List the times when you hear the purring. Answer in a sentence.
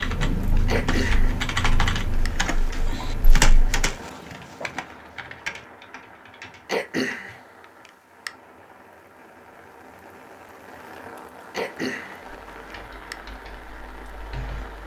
The purring can be heard from 0.2 to 3.9 s.